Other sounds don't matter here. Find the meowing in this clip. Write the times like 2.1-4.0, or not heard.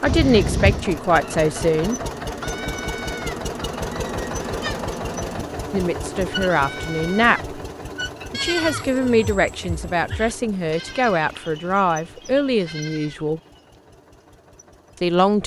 0.1-0.8.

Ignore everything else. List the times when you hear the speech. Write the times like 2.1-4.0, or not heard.
0.0-1.9, 5.7-7.5, 8.3-13.4, 15.0-15.4.